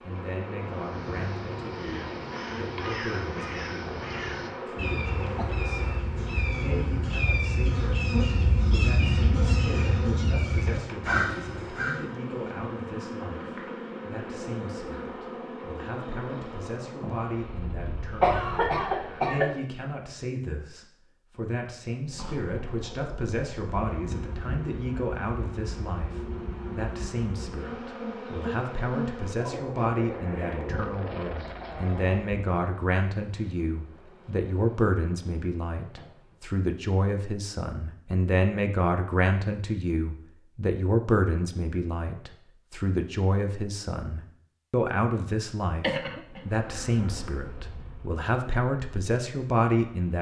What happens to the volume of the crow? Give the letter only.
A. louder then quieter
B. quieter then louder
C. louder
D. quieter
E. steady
C.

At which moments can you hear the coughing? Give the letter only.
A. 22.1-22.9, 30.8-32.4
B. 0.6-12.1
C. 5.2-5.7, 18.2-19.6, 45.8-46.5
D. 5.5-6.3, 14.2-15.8
C.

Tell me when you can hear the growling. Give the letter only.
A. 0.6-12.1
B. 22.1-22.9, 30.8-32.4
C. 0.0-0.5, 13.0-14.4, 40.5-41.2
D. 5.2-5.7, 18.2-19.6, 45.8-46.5
B.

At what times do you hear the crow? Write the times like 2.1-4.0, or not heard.
0.6-12.1.